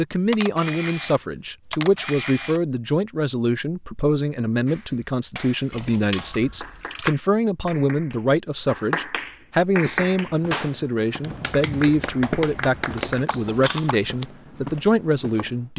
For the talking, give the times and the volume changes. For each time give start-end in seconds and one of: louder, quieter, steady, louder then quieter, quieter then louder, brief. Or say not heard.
0.0-15.7 steady.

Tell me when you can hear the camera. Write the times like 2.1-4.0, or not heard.
0.3-2.6, 5.7-7.2, 13.3-13.9.